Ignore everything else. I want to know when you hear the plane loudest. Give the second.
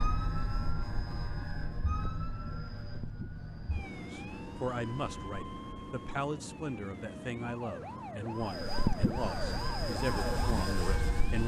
9 s.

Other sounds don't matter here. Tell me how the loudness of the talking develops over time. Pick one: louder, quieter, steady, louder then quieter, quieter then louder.
steady.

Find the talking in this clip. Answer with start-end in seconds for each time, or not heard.
4.0-11.4.